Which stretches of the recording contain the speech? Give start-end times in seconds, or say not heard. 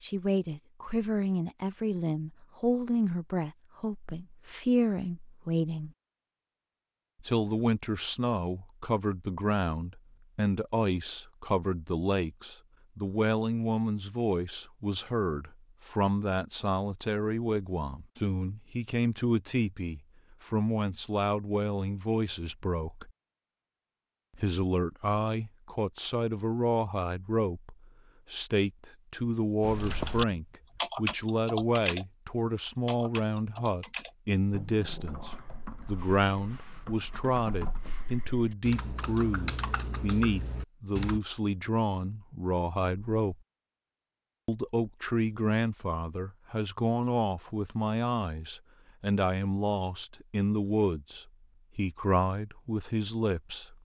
0.0-5.9, 7.2-23.1, 24.4-43.4, 44.5-53.7.